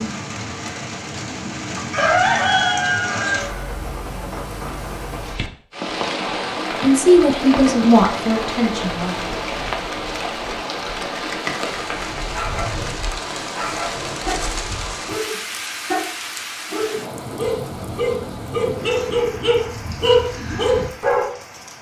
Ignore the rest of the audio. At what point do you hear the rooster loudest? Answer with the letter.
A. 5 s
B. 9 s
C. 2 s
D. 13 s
C.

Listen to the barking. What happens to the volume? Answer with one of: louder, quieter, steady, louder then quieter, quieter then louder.
louder.